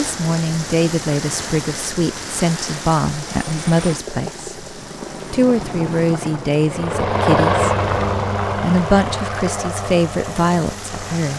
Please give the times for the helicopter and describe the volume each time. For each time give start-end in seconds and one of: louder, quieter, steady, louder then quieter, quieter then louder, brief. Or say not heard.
0.0-11.3 louder then quieter.